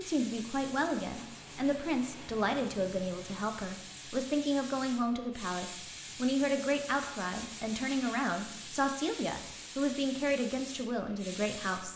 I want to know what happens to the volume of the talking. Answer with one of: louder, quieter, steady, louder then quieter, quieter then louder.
steady.